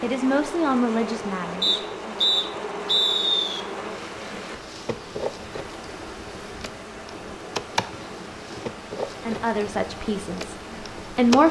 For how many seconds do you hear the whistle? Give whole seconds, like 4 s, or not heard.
3 s.